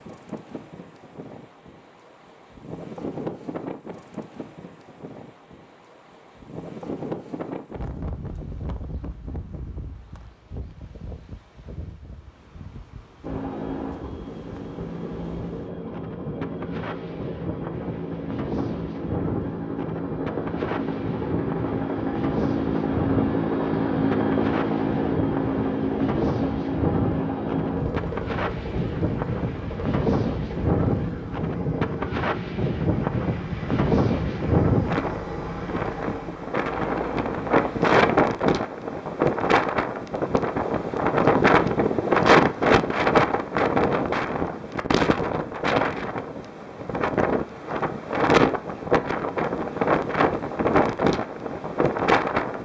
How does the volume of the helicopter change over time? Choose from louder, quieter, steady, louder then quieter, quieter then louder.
louder then quieter.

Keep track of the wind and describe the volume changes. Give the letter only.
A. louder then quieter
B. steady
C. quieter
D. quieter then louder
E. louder
E.